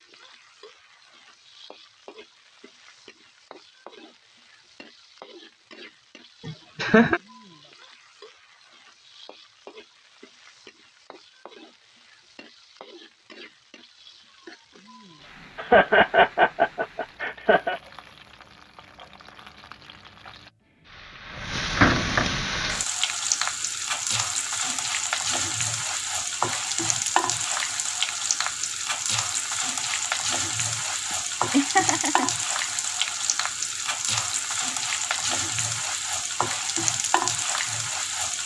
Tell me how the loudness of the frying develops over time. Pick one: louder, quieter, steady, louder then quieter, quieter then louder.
louder.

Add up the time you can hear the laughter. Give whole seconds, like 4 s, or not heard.
4 s.